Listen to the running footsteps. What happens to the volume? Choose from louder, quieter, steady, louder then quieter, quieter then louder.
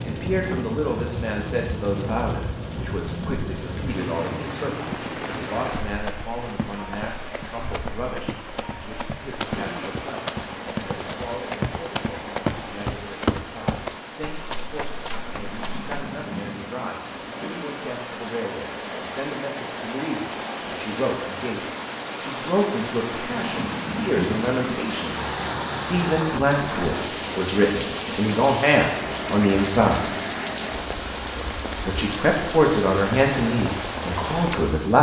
louder then quieter.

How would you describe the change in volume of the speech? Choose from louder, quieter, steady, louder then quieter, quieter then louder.
quieter then louder.